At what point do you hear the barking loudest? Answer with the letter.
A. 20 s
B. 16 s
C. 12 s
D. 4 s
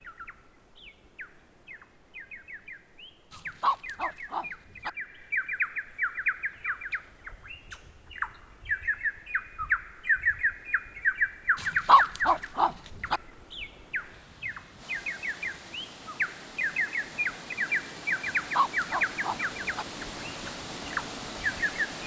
C.